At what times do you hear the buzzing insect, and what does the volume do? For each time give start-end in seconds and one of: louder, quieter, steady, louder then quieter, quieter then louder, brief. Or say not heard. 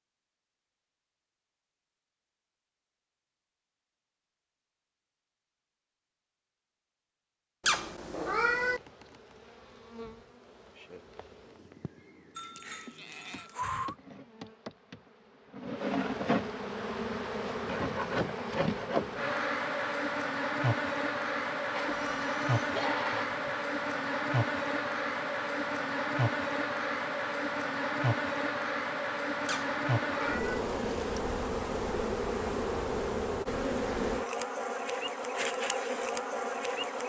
8.6-37.0 louder.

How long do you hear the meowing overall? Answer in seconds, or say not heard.
2 s.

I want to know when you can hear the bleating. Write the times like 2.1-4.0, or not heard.
12.3-13.9, 21.8-23.6.